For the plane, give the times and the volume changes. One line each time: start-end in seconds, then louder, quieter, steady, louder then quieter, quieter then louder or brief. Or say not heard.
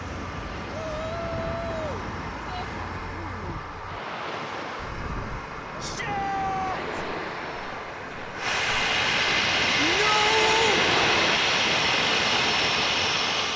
0.0-13.5 louder.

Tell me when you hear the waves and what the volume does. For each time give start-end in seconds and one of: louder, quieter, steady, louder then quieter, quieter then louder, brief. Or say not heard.
0.0-13.5 louder.